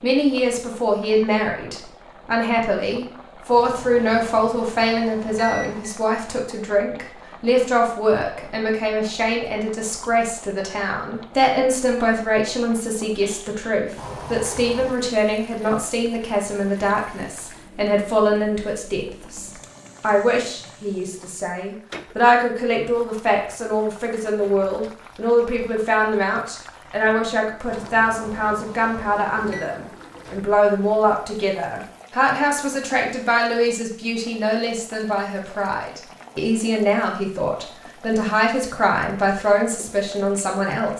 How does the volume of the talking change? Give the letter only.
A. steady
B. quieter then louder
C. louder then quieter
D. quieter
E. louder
A.